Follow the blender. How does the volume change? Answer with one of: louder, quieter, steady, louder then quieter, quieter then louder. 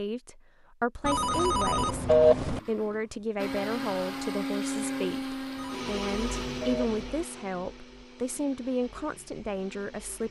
quieter.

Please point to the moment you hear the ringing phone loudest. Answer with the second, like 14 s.
2 s.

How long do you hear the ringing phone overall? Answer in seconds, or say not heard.
3 s.